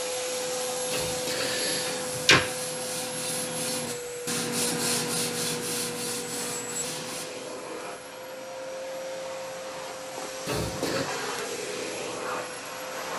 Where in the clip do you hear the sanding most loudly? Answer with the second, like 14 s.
5 s.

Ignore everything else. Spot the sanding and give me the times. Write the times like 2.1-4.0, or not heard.
0.3-7.2.